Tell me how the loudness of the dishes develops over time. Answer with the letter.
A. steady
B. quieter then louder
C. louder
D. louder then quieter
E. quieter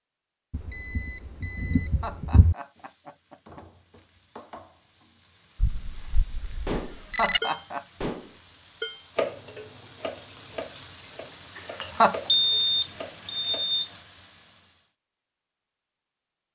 E.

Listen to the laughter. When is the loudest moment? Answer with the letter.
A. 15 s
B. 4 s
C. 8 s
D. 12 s
D.